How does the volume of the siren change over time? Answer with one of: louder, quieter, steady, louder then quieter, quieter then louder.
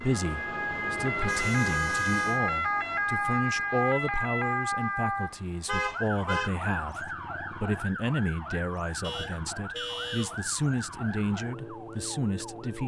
quieter.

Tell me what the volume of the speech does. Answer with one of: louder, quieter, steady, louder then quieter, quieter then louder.
steady.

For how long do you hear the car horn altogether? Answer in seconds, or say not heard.
4 s.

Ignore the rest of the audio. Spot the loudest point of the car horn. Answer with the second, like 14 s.
6 s.